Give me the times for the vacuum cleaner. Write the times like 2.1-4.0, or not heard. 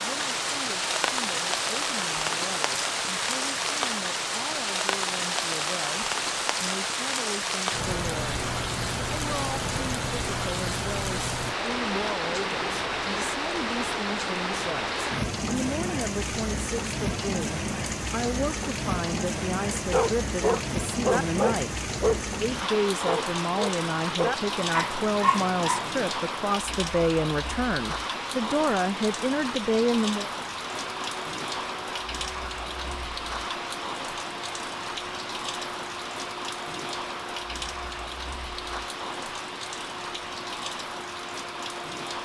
30.9-42.2.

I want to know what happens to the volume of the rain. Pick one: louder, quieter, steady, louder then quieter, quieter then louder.
quieter.